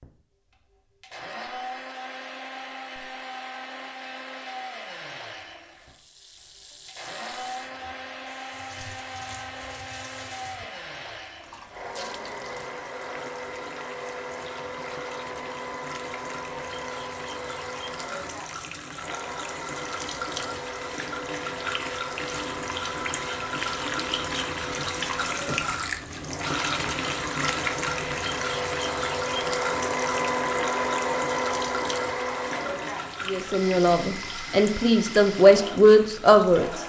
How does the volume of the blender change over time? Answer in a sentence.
The loudness of the blender goes up.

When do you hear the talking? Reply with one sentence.
The talking can be heard from 33.2 to 36.8 s.